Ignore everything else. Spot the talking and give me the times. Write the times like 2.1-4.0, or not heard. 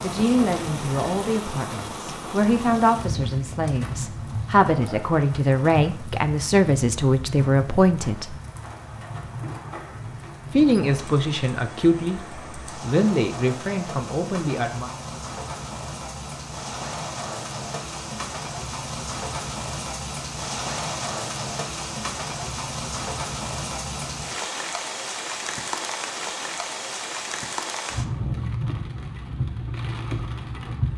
0.0-8.2, 10.5-14.9.